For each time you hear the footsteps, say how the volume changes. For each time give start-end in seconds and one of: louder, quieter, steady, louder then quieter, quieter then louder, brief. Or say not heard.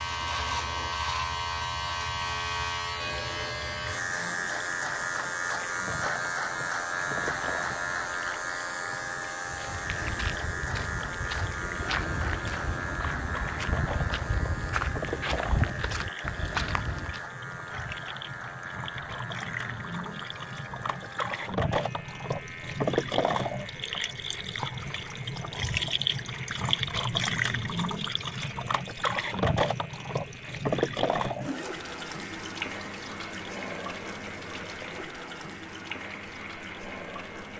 9.4-17.2 louder.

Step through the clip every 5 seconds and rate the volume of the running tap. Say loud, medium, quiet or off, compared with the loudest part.
quiet, quiet, medium, medium, loud, loud, loud, medium.